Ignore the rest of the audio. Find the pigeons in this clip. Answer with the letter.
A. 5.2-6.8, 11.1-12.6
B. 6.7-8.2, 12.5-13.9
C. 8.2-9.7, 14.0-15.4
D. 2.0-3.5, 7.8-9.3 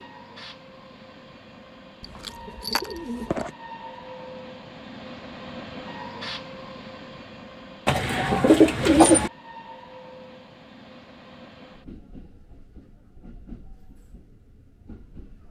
D.